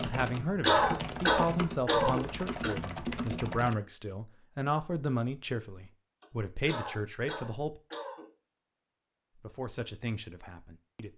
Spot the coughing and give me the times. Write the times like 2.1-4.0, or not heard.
0.1-2.7, 6.2-8.2.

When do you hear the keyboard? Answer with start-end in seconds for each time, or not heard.
0.0-3.8.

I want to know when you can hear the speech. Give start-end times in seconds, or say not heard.
0.0-7.8, 9.3-11.1.